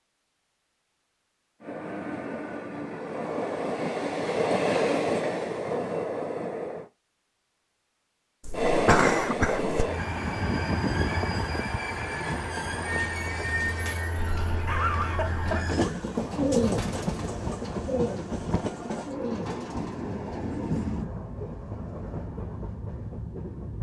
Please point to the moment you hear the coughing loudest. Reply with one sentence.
The volume of the coughing peaks at 9 seconds.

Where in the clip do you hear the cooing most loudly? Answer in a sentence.
The loudest moment of the cooing is at 17 seconds.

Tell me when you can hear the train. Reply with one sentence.
You can hear the train from 1.6 to 6.9 s and from 8.5 to 23.7 s.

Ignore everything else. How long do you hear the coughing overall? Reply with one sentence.
The coughing can be heard for 3 seconds in total.